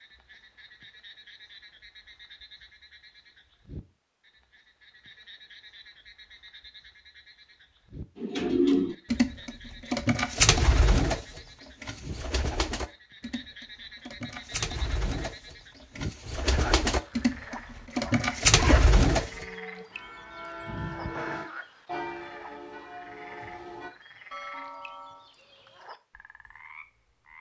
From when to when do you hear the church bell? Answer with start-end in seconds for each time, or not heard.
19.2-25.3.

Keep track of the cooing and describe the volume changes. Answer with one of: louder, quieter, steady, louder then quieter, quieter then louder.
quieter then louder.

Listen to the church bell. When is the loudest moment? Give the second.
21 s.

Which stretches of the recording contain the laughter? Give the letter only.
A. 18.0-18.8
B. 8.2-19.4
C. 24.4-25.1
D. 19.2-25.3
A.